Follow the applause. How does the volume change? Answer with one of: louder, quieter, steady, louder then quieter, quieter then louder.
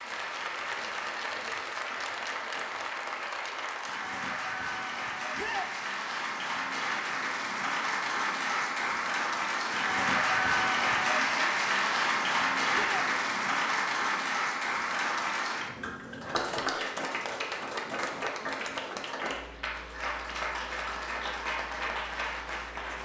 louder then quieter.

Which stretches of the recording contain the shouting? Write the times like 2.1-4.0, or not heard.
5.3-5.8, 12.7-13.1.